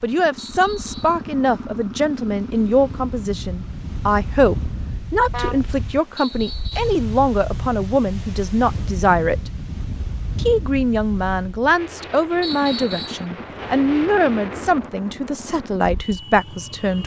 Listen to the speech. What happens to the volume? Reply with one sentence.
The loudness of the speech stays about the same.